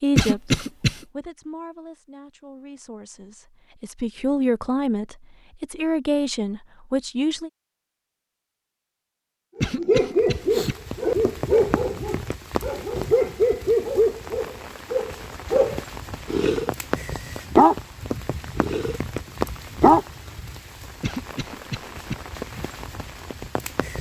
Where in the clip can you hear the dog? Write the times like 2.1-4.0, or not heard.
9.6-16.7, 17.4-19.0, 19.8-20.5.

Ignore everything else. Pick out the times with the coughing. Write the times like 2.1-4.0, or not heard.
0.1-1.0, 9.6-10.8, 21.0-22.1.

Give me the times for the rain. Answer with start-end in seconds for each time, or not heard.
10.2-23.9.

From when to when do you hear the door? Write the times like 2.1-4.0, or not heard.
not heard.